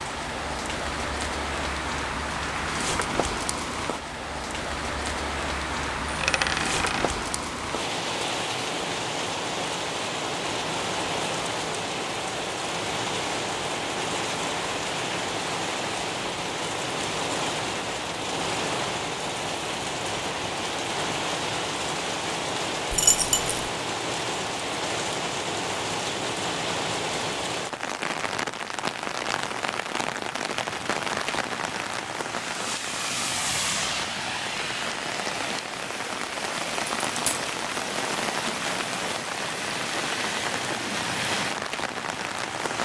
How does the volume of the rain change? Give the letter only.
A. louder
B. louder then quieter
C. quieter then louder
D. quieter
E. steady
E.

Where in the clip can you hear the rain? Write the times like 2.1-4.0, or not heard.
0.0-42.7.